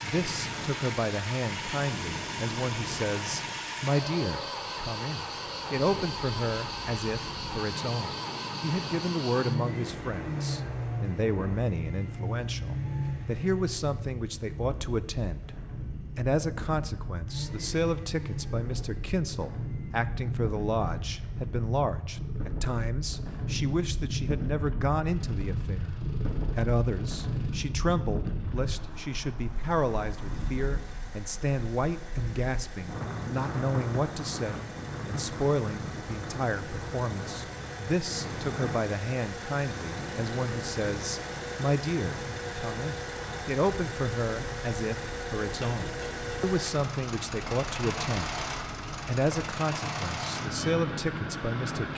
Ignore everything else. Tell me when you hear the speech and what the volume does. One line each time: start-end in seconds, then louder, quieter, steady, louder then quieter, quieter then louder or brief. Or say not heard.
0.0-15.6 steady
16.1-25.9 steady
26.6-48.5 steady
49.0-51.9 brief.